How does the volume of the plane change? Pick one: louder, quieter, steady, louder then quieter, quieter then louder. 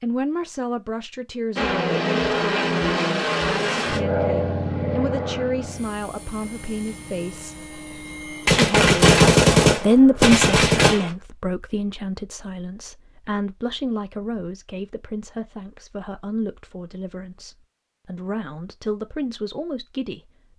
quieter.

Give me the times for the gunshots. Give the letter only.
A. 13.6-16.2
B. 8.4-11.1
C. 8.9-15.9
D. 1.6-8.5
B.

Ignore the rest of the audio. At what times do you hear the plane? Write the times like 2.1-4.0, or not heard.
1.6-8.5.